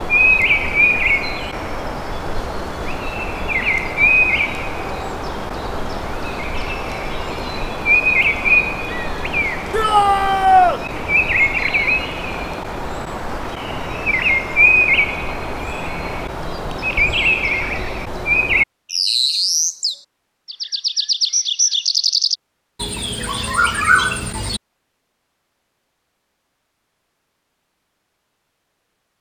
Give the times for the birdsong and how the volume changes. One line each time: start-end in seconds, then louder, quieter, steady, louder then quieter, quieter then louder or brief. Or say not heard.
0.0-24.6 steady.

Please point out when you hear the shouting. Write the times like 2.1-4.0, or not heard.
9.7-10.8.